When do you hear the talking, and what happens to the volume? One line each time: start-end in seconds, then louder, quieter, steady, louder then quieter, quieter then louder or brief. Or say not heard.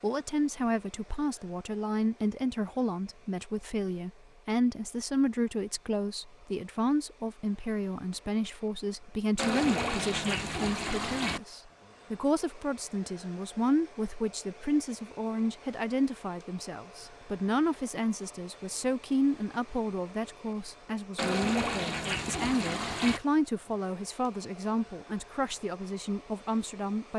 0.0-27.1 steady.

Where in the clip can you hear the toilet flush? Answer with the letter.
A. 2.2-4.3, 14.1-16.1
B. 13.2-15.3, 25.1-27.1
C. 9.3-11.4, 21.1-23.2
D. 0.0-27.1
C.